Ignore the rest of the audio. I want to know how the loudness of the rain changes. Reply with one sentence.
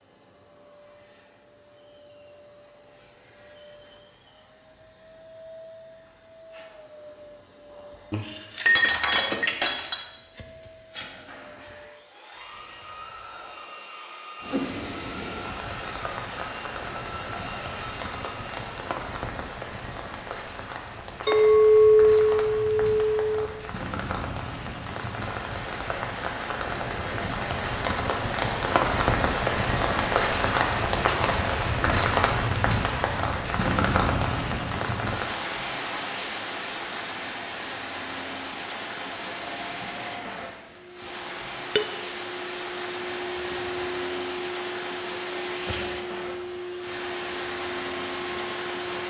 The loudness of the rain goes up, then down.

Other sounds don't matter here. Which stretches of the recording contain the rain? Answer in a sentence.
The rain can be heard from 14.4 to 49.0 s.